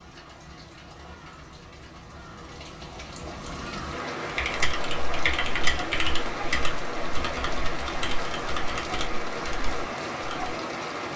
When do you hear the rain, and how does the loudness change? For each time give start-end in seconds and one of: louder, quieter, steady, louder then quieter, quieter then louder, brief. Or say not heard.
0.0-11.1 louder.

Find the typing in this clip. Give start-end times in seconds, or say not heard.
4.2-10.6.